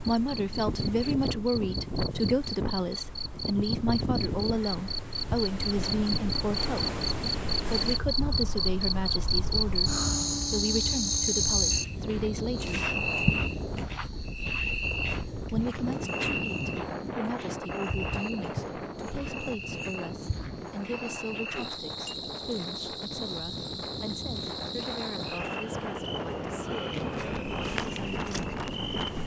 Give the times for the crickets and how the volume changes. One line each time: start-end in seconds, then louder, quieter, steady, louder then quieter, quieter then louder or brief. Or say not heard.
0.1-29.2 louder then quieter.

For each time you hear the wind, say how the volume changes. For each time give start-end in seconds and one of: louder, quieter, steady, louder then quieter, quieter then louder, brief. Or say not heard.
0.0-29.2 steady.